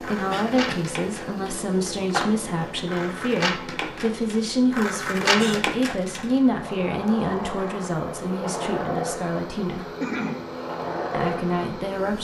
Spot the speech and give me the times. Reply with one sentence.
The speech can be heard from 0.0 to 9.9 s and from 11.1 to 12.1 s.